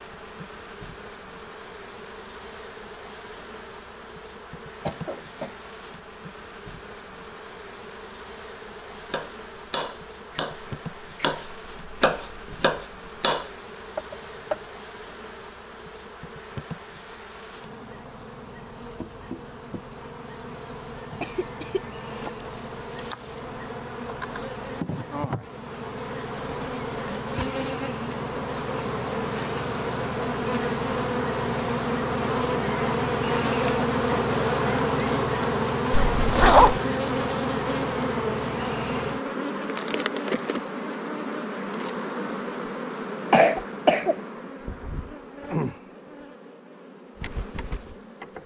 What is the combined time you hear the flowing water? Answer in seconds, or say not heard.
not heard.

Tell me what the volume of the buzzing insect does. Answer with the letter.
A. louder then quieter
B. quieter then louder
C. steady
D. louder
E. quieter
A.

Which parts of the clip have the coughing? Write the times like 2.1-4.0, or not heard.
4.8-5.7, 21.2-21.9, 43.3-44.2.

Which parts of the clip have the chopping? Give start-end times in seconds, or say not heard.
8.9-14.6.